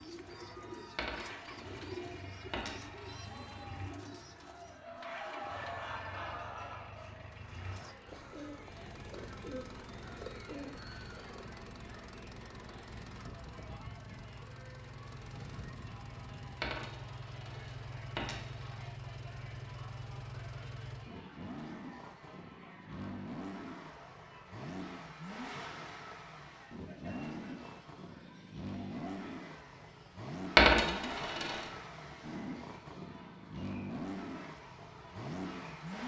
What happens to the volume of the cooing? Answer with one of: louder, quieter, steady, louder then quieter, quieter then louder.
quieter then louder.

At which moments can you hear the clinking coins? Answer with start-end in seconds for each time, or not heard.
0.9-3.1, 16.6-18.9, 30.6-31.6.